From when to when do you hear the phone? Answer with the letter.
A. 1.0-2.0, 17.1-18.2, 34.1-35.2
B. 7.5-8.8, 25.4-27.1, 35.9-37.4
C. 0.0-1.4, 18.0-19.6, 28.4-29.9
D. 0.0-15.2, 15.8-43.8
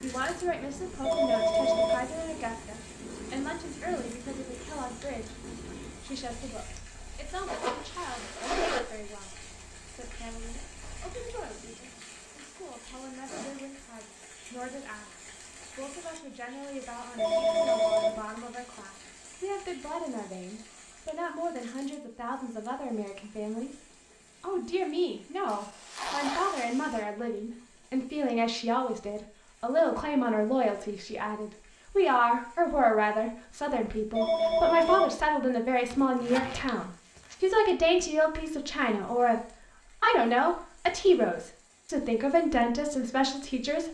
A.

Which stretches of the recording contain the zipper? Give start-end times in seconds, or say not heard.
7.5-8.8, 25.4-27.1, 35.9-37.4.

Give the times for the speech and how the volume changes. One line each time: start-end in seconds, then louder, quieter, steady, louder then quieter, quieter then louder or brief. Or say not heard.
0.0-15.2 quieter
15.8-43.8 louder.